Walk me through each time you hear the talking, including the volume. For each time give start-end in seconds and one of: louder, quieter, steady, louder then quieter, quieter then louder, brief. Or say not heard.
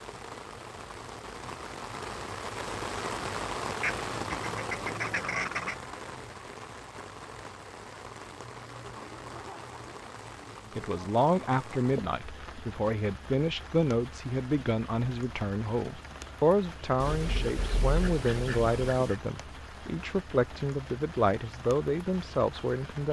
10.8-23.0 steady.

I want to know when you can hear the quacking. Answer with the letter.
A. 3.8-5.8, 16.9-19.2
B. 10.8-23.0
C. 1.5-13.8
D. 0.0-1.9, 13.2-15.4
A.